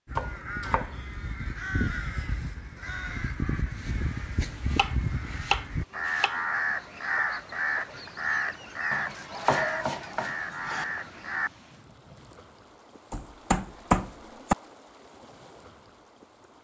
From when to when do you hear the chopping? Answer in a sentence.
You can hear the chopping from 0.1 to 1.4 s, from 4.5 to 6.4 s, from 8.9 to 10.8 s and from 13.1 to 14.6 s.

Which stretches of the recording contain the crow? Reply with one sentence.
You can hear the crow from 0.1 to 11.5 s.